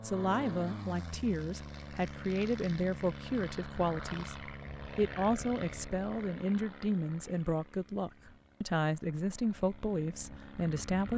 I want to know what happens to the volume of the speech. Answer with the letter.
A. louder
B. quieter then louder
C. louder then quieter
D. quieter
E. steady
E.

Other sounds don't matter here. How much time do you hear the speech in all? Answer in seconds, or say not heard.
11 s.